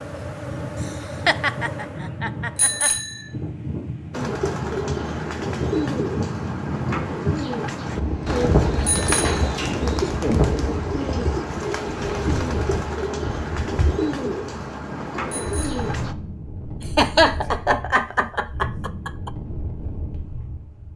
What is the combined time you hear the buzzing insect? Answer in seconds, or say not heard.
3 s.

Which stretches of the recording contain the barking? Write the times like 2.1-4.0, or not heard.
not heard.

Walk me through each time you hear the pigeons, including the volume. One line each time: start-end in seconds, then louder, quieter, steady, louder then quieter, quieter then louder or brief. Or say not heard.
4.1-16.1 steady.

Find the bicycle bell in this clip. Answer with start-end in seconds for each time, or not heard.
2.5-3.2, 8.8-9.5, 15.3-15.9.